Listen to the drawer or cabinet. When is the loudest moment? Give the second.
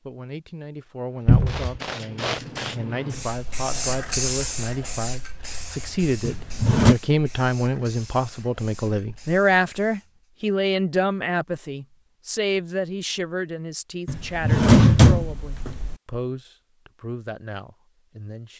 15 s.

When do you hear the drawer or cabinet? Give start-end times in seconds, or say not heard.
1.2-1.8, 6.2-7.0, 14.1-15.9.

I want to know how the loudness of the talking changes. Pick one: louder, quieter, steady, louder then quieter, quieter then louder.
louder then quieter.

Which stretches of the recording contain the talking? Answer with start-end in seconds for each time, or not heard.
0.1-18.5.